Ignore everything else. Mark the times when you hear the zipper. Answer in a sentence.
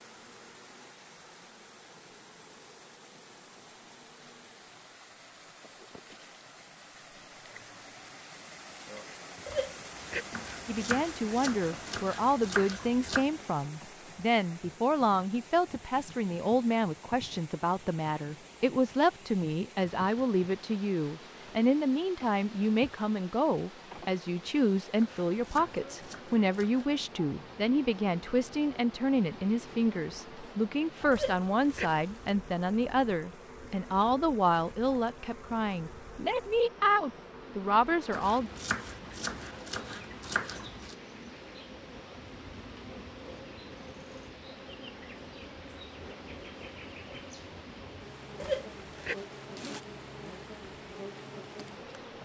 You can hear the zipper from 9.4 to 10.3 s, from 31.1 to 32.3 s and from 48.4 to 49.8 s.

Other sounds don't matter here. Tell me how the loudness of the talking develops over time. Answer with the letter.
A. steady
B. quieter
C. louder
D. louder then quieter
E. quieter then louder
A.